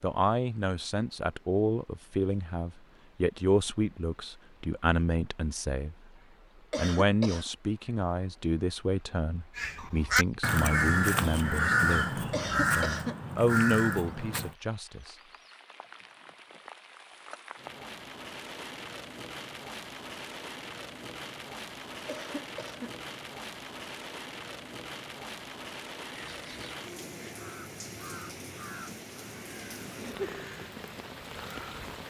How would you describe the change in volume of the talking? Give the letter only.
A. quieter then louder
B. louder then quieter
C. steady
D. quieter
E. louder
C.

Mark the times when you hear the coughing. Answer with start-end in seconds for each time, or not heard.
6.7-7.5, 12.3-13.2, 22.1-22.9.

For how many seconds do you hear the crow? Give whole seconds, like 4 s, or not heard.
11 s.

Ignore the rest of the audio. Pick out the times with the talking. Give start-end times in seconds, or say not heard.
0.0-6.0, 6.8-15.2.